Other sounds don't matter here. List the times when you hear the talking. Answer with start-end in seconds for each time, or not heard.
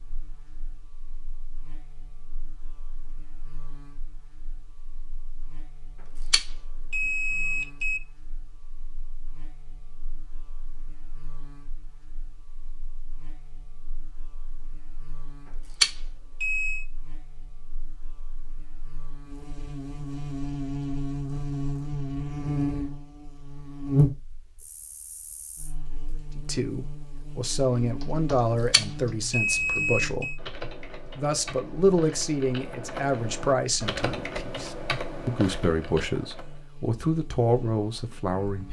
26.4-38.6.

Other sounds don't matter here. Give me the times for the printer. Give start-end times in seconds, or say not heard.
not heard.